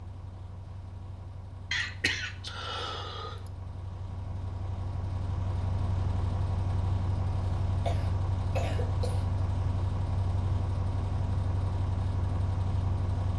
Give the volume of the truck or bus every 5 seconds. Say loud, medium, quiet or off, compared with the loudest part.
medium, loud, loud.